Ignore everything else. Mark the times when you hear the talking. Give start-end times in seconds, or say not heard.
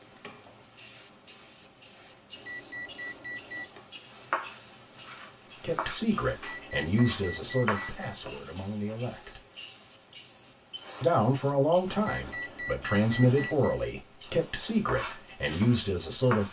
5.6-9.4, 11.0-16.4.